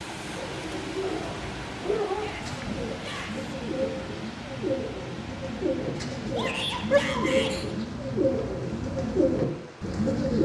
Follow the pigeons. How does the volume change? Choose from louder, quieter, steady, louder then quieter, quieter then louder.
louder.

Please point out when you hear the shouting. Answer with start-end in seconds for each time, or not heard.
2.1-3.5, 6.3-7.5.